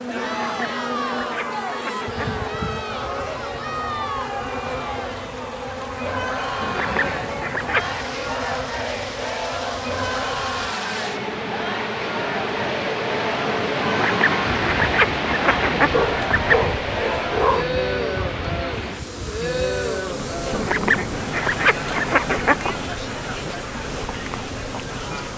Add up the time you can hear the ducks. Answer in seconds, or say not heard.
9 s.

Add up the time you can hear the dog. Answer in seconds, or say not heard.
2 s.